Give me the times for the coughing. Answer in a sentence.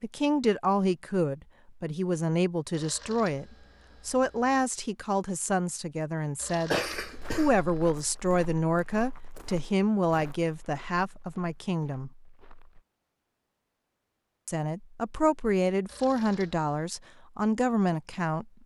The coughing can be heard from 6.7 to 7.5 s.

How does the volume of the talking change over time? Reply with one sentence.
The volume of the talking stays about the same.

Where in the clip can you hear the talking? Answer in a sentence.
The talking can be heard from 0.0 to 12.1 s and from 14.4 to 18.6 s.